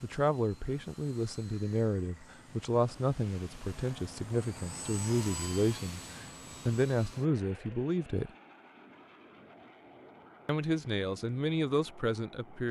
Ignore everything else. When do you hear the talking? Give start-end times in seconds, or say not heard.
0.0-8.3, 10.4-12.6.